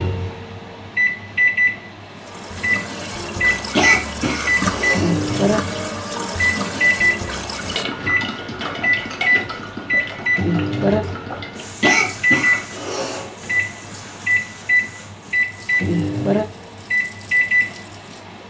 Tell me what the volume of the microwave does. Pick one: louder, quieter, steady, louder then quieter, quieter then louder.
steady.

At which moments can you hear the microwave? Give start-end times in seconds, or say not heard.
0.0-18.4.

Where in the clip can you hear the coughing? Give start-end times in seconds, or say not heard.
3.8-5.2, 11.8-13.3.